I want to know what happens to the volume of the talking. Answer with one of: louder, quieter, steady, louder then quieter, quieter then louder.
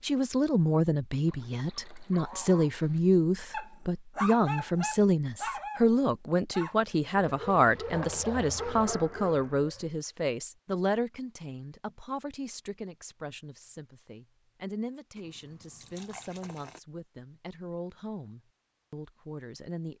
quieter.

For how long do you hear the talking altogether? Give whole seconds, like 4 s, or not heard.
20 s.